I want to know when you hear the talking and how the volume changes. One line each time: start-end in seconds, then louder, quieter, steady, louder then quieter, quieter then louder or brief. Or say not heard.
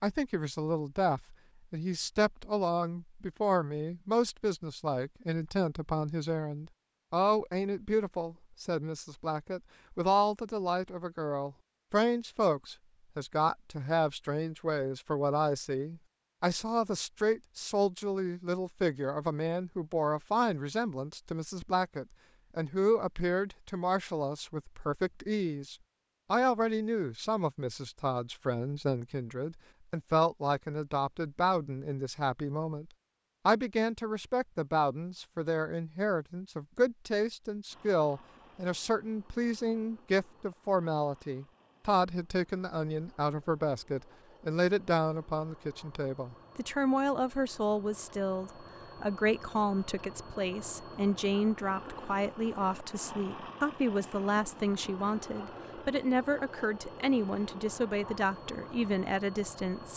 0.0-59.9 steady.